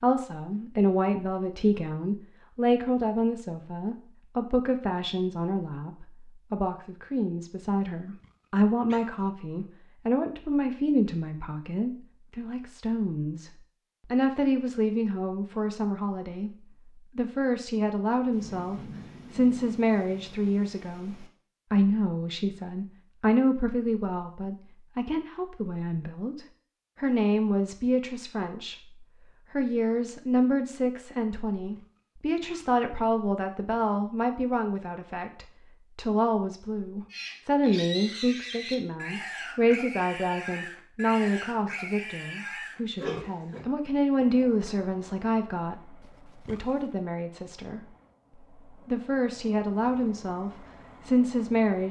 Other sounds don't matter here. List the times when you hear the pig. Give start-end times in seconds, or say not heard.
37.1-43.6.